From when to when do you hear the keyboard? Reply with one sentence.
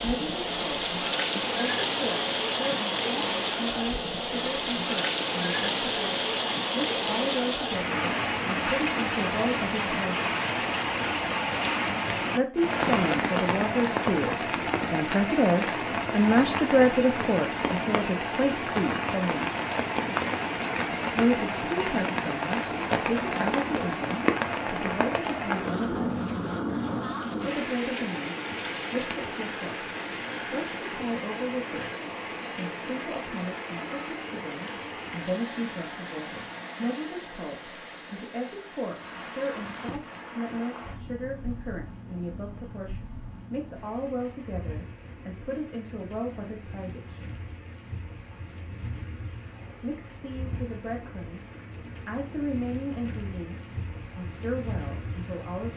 You can't hear the keyboard here.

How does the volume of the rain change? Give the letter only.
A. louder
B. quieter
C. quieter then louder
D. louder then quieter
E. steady
B.